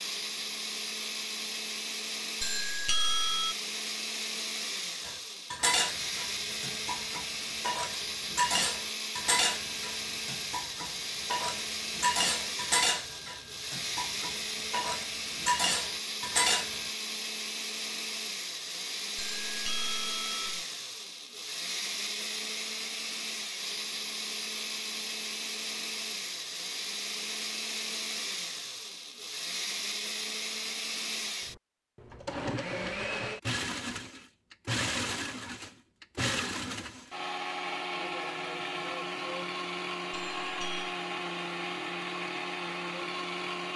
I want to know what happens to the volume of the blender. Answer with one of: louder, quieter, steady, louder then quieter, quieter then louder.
steady.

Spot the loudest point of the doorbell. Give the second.
3 s.